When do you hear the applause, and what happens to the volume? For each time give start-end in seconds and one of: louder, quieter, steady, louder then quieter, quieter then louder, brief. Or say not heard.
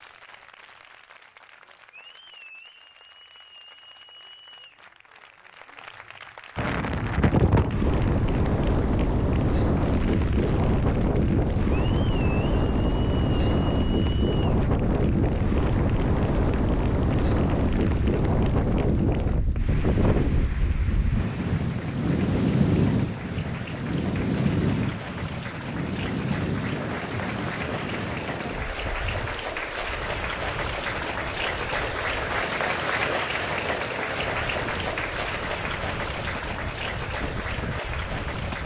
0.0-38.6 louder.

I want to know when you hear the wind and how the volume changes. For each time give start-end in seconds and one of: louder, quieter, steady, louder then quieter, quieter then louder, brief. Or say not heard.
6.5-38.6 quieter.